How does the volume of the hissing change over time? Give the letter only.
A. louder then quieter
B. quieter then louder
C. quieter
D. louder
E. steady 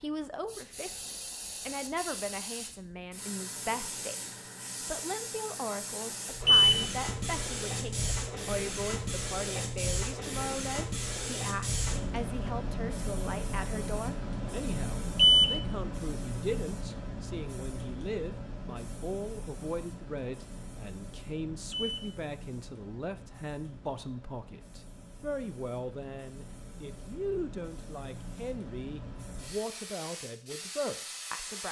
A.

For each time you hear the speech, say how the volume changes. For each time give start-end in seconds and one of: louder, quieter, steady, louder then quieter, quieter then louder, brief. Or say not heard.
0.0-31.6 steady.